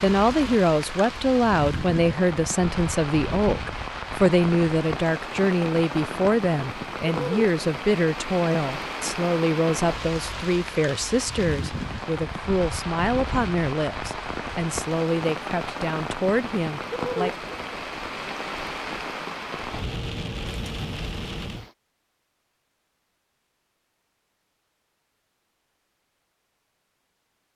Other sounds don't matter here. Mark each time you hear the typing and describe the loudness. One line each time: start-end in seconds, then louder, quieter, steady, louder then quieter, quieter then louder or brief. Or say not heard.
not heard.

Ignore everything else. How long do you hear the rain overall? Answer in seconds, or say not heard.
22 s.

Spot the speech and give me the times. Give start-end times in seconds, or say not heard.
0.0-17.4.